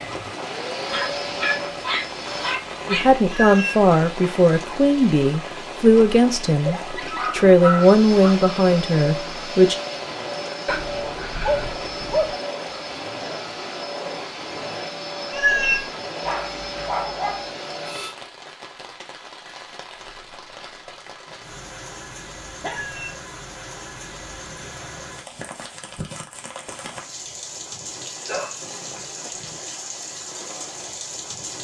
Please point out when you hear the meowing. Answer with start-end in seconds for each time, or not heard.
3.2-3.9, 15.3-15.9, 22.7-23.2.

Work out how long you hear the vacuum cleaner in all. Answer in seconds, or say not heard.
13 s.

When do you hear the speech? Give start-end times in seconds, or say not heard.
2.9-9.8.